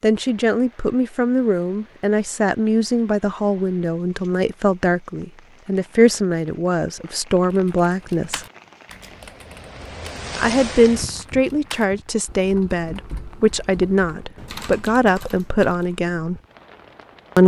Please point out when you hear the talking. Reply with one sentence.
You can hear the talking from 0.0 to 8.4 s and from 10.3 to 16.4 s.